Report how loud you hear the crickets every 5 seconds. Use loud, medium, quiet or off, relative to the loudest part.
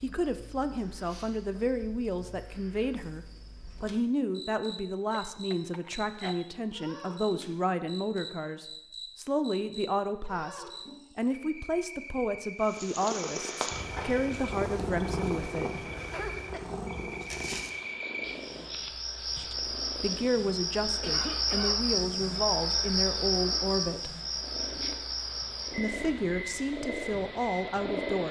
quiet, quiet, quiet, medium, loud, medium.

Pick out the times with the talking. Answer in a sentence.
The talking can be heard from 0.0 to 15.8 s, from 19.4 to 24.1 s and from 25.8 to 28.2 s.